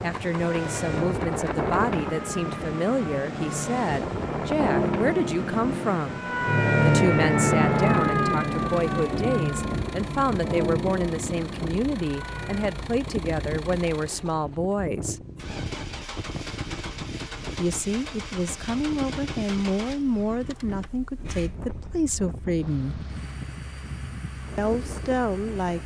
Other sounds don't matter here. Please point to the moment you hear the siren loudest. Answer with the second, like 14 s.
7 s.